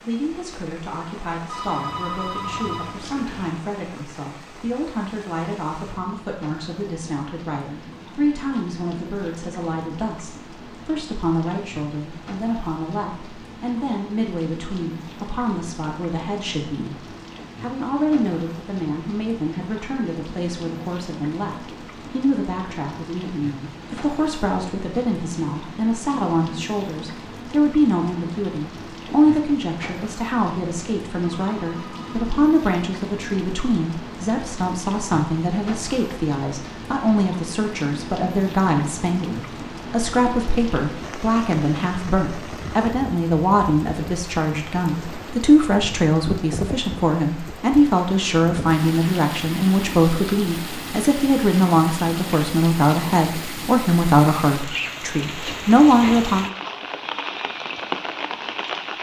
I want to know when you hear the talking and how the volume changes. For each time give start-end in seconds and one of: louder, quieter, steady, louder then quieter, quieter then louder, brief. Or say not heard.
0.0-56.5 louder.